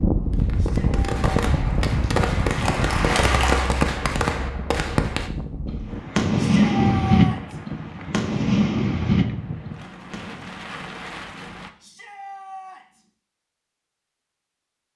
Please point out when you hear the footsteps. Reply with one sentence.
You can't hear the footsteps here.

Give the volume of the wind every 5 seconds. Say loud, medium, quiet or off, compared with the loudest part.
loud, medium, medium.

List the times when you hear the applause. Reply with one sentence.
You can hear the applause from 1.8 to 3.8 s.